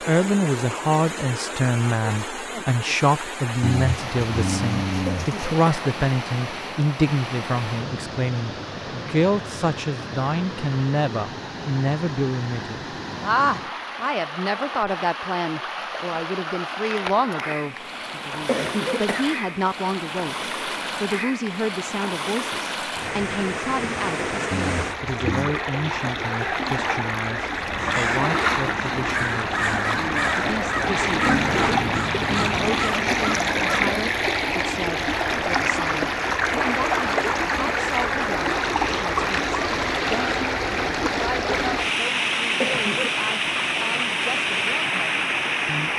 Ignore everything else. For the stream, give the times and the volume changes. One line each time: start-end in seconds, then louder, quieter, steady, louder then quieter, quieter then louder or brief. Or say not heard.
0.0-45.9 louder.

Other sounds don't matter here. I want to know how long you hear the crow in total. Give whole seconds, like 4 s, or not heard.
7 s.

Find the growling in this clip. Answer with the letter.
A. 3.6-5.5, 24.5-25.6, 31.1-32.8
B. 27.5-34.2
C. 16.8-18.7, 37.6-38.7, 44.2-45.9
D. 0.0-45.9
A.